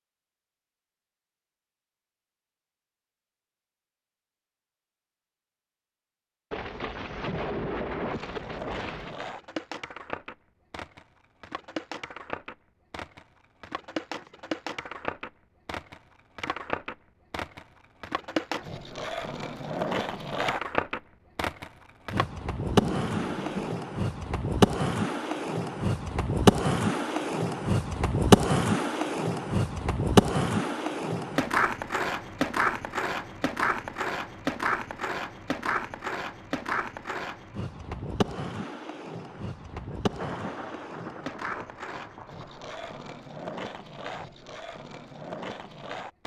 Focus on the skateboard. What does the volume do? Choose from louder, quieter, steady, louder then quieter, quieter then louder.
louder then quieter.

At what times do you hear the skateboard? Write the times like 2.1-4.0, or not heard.
8.1-46.2.